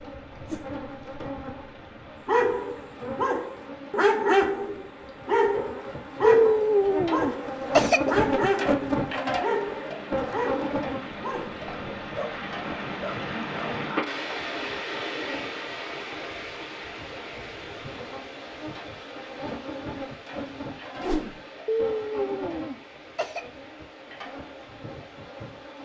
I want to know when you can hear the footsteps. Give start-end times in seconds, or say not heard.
not heard.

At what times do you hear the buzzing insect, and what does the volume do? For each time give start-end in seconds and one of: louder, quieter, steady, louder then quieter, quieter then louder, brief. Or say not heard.
0.0-25.7 louder then quieter.